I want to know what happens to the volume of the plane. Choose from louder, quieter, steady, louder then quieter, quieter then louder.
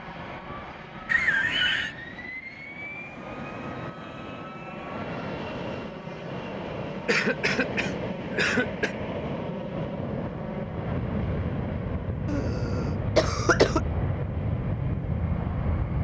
louder.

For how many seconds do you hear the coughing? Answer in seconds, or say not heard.
4 s.